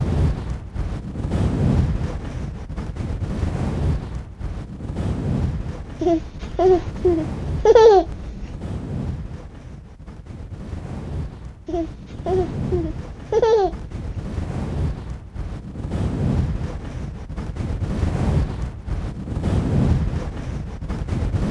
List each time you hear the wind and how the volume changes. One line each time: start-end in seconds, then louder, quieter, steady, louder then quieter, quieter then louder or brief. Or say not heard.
0.0-21.4 quieter then louder.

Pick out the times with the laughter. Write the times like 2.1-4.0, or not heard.
6.0-8.6, 11.7-14.2.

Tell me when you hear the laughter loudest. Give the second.
8 s.